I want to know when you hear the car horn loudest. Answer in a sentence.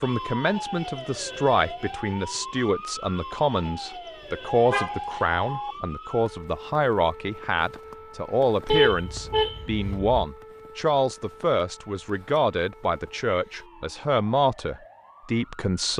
The volume of the car horn peaks at 9 seconds.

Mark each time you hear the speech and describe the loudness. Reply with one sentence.
You can hear the speech from 0.0 to 15.9 s, at a steady volume.